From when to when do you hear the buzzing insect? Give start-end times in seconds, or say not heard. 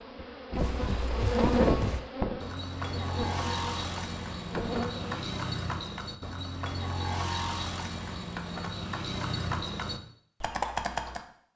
0.0-5.2.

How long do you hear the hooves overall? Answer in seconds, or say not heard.
11 s.